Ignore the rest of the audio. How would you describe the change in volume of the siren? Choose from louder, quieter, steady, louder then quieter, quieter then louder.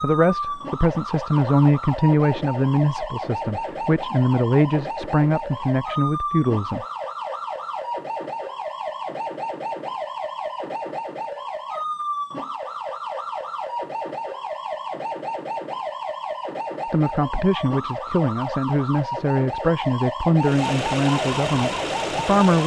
steady.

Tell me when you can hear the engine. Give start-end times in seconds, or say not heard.
20.4-22.6.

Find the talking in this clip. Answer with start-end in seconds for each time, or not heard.
0.0-6.8, 16.9-22.6.